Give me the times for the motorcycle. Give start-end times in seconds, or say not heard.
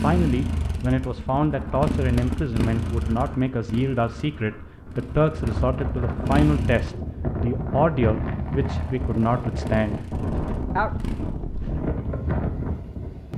0.0-7.0, 8.7-11.4.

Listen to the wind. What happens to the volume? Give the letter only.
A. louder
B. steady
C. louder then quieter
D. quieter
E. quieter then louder
A.